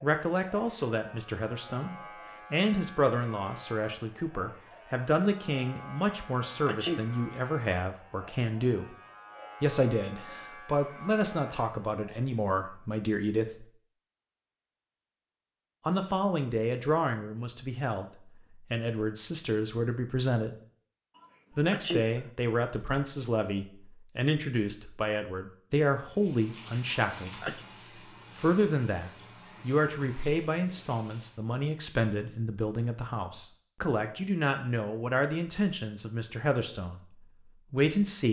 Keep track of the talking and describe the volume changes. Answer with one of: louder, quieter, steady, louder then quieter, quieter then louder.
steady.